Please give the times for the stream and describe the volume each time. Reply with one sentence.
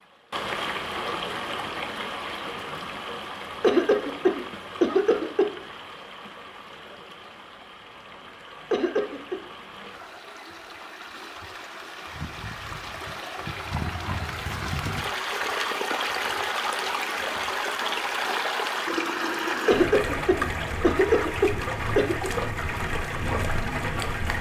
You can hear the stream from 0.3 to 24.3 s, getting quieter then louder.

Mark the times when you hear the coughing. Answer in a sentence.
You can hear the coughing from 3.6 to 5.5 s, from 8.7 to 9.3 s and from 19.6 to 22.3 s.